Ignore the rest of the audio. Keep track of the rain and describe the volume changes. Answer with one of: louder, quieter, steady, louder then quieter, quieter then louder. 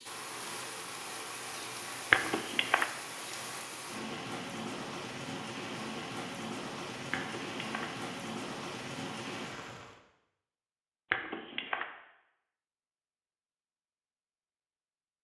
steady.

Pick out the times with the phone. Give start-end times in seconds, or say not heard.
2.1-2.9, 7.1-7.8, 11.1-11.8.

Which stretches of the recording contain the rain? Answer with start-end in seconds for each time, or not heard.
0.0-10.0.